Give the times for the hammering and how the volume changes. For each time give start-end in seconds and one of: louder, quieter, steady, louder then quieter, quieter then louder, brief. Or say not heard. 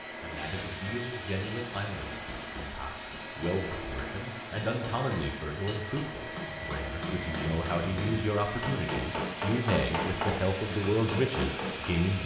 0.0-12.1 louder.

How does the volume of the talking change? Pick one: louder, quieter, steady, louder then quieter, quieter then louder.
louder.